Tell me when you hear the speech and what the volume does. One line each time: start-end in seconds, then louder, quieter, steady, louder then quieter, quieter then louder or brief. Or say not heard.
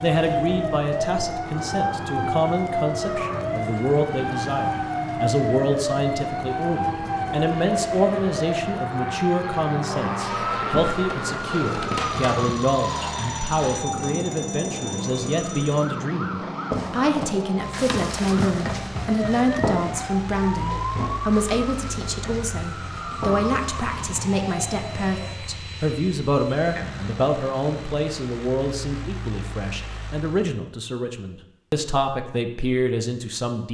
0.0-33.6 steady.